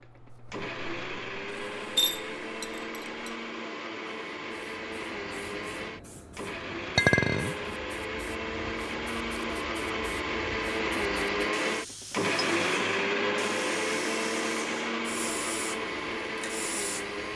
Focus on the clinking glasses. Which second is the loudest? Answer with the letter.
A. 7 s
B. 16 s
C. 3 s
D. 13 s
A.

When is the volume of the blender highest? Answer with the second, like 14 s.
13 s.